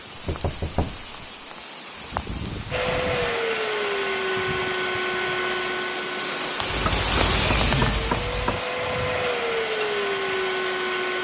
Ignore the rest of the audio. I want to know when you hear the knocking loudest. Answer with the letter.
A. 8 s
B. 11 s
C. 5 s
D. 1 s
A.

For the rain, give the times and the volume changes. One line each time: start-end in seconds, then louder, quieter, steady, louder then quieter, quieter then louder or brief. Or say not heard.
0.0-11.1 louder then quieter.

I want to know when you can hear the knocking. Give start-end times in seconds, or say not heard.
0.1-1.3, 6.7-8.6.